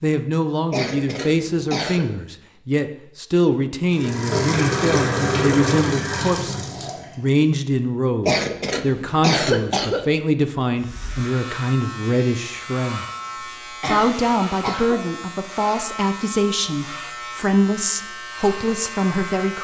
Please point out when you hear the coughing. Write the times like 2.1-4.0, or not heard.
0.7-2.0, 8.2-10.1, 13.8-15.0.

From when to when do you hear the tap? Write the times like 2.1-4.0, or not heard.
3.9-7.2.